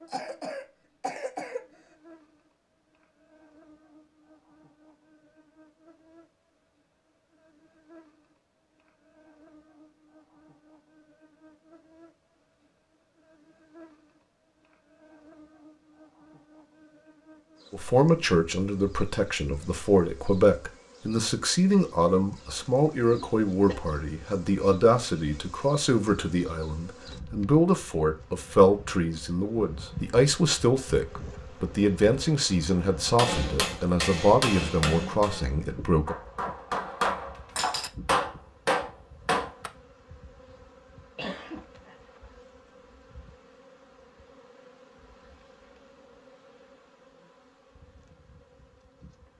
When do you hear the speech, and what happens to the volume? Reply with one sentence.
You can hear the speech from 17.7 to 36.1 s, at a steady volume.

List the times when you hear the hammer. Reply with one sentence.
You can hear the hammer from 33.1 to 39.7 s.